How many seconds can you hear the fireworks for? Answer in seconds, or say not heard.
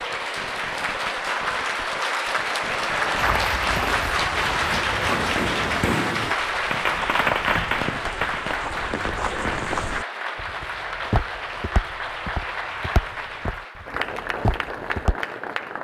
10 s.